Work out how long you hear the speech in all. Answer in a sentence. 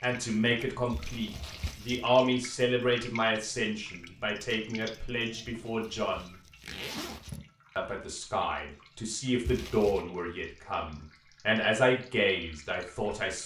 You can hear the speech for 12 seconds altogether.